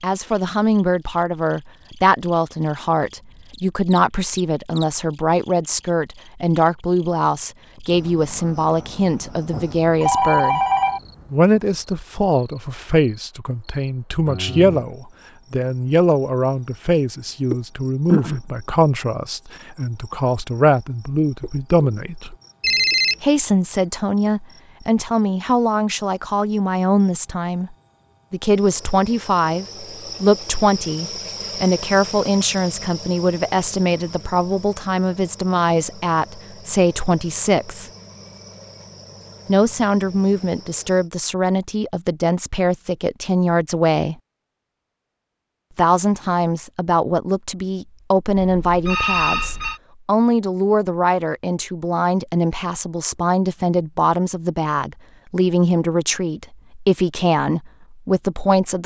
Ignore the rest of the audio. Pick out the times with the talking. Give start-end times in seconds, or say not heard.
0.0-10.6, 11.3-22.4, 23.2-37.9, 39.5-44.1, 45.8-58.8.